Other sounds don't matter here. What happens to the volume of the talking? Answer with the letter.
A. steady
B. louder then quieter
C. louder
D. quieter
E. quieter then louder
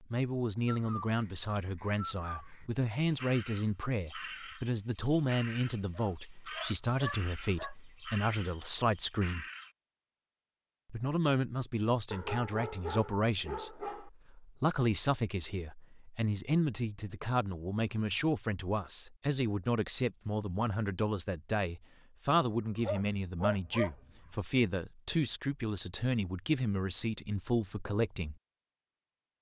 A.